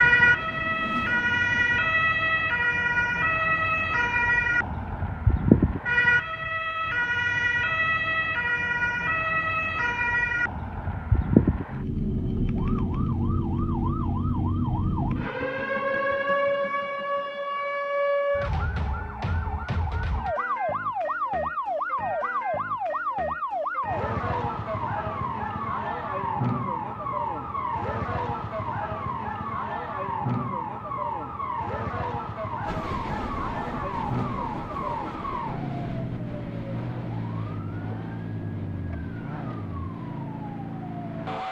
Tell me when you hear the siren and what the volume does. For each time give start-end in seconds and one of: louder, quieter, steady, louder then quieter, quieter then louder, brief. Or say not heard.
0.0-41.4 quieter.